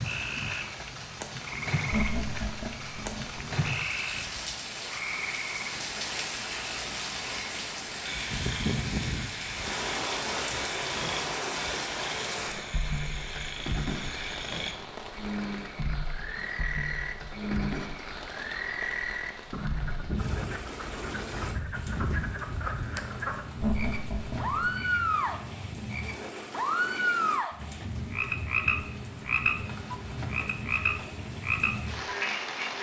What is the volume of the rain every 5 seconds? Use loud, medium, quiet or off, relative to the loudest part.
loud, loud, loud, medium, medium, medium, loud.